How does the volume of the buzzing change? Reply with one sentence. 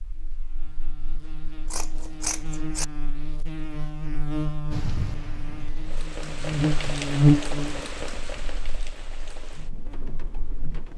The loudness of the buzzing goes up, then down.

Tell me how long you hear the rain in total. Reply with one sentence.
The rain can be heard for 6 seconds in total.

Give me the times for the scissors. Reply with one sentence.
The scissors can be heard from 1.6 to 2.9 s.